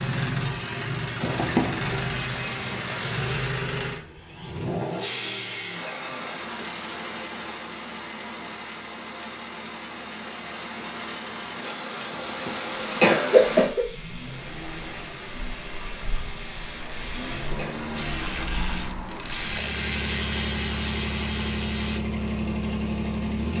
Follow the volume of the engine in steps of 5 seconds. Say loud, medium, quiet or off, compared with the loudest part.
loud, medium, medium, medium, loud.